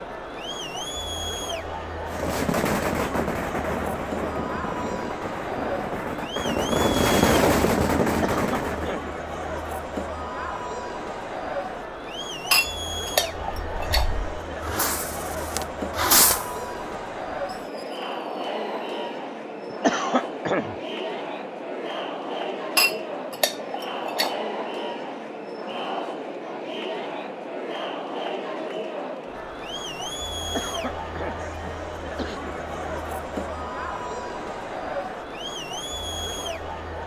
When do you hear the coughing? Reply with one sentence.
The coughing can be heard from 8.1 to 9.1 s, from 19.7 to 20.8 s and from 30.4 to 32.4 s.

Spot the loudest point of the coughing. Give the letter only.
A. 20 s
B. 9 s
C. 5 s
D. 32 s
A.